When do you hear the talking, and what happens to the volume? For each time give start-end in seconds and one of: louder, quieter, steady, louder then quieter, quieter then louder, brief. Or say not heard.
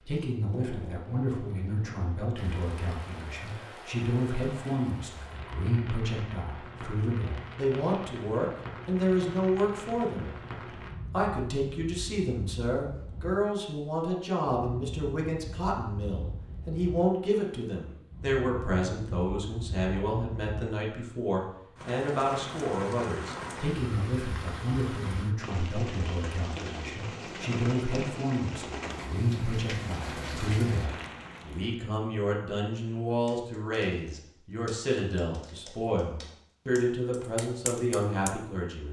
0.1-10.3 louder
11.1-38.8 steady.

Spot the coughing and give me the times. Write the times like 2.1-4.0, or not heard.
not heard.